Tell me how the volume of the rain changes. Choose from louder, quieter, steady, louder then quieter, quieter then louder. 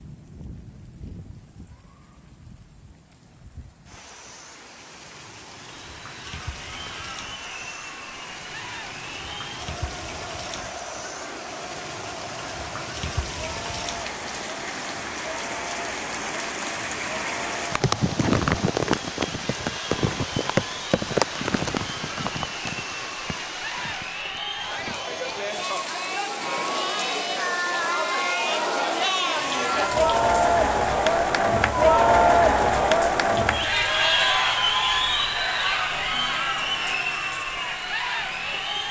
louder then quieter.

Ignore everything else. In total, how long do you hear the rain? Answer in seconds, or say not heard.
39 s.